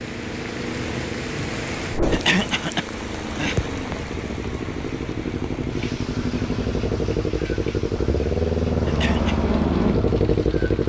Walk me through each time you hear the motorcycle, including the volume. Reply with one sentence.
The motorcycle can be heard from 0.0 to 10.8 s, getting louder.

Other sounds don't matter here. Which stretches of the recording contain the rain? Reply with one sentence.
You can hear the rain from 0.0 to 10.8 s.